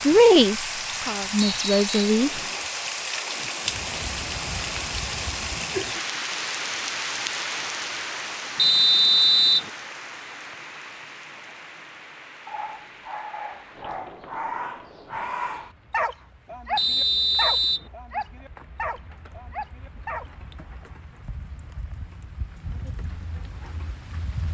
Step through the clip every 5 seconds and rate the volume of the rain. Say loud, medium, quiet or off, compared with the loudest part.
loud, loud, quiet, quiet, quiet.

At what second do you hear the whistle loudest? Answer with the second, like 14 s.
9 s.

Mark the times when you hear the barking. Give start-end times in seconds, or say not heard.
12.4-20.3.